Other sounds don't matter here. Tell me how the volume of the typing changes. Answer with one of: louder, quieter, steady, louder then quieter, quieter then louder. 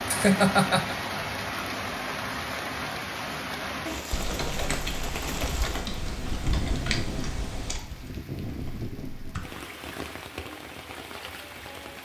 quieter.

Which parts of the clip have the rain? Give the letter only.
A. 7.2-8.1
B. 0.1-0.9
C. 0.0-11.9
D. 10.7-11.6
C.